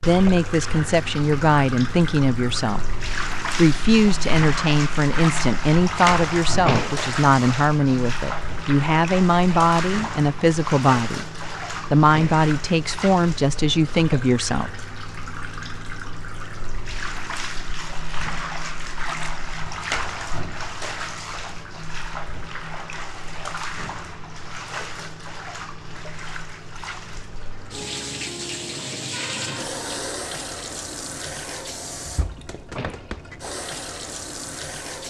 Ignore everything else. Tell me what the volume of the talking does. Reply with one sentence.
The volume of the talking stays about the same.